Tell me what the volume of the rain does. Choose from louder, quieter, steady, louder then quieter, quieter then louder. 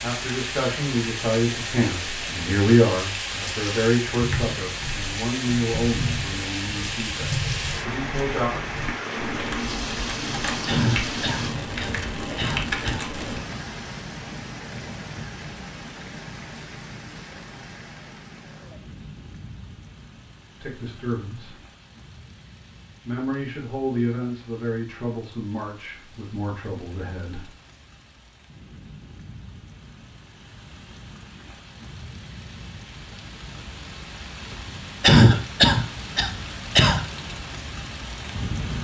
quieter then louder.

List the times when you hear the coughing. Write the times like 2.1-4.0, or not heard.
10.7-13.1, 35.0-37.0.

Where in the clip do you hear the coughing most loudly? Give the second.
35 s.